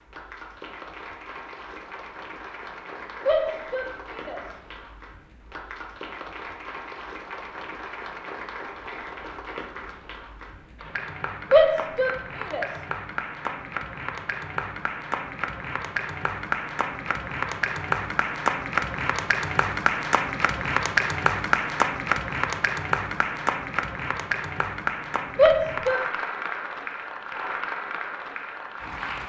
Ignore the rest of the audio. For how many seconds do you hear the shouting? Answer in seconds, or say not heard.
3 s.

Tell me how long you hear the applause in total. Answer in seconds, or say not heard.
29 s.